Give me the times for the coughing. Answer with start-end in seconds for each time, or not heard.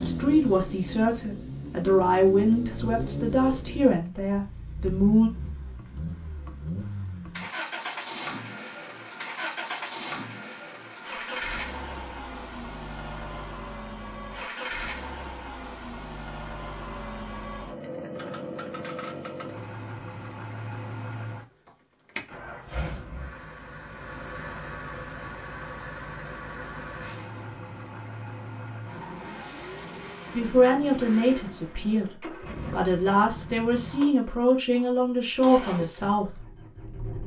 27.0-27.6.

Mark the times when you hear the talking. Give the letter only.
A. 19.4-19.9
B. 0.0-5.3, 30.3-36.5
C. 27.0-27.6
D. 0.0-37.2
B.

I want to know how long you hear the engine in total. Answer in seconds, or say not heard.
37 s.